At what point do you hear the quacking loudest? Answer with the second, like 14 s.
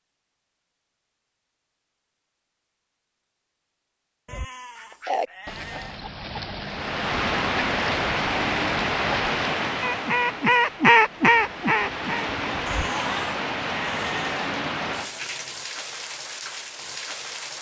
11 s.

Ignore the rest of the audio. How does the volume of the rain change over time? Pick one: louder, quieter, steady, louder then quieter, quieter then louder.
quieter.